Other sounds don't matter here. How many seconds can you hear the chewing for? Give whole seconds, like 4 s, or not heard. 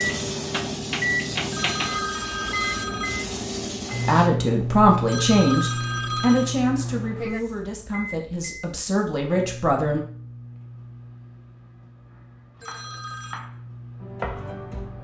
not heard.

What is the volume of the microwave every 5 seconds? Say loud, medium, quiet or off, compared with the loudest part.
loud, loud, quiet.